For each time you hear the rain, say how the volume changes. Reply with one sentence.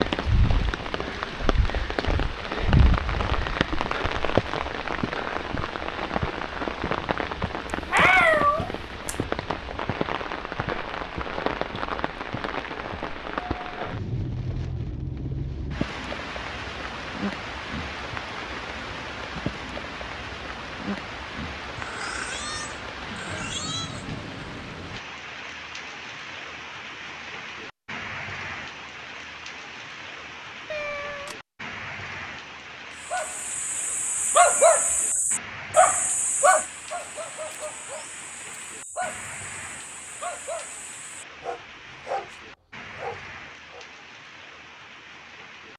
The rain can be heard from 0.0 to 45.7 s, getting quieter.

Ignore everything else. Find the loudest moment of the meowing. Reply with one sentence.
The volume of the meowing peaks at 8 seconds.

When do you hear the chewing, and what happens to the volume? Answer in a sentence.
The chewing can't be heard in this clip.